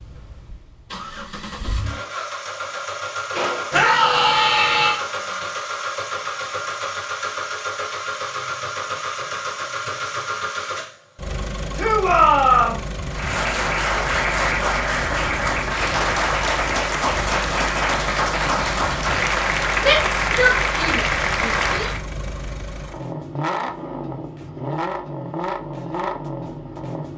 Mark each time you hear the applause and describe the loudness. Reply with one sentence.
The applause can be heard from 13.1 to 22.0 s, at a steady volume.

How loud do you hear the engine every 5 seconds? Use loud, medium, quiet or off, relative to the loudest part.
loud, loud, loud, medium, loud, loud.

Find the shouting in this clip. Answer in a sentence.
You can hear the shouting from 3.7 to 5.0 s, from 11.8 to 12.8 s and from 19.8 to 21.9 s.